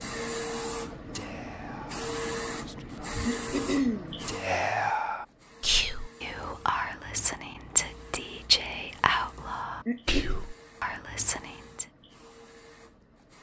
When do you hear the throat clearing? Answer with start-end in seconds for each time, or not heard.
2.8-4.2, 9.3-10.3.